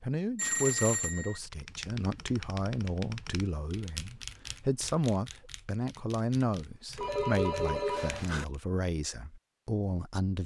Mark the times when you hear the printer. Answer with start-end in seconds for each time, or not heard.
not heard.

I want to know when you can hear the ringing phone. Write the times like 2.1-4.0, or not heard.
0.3-1.4, 7.0-8.4.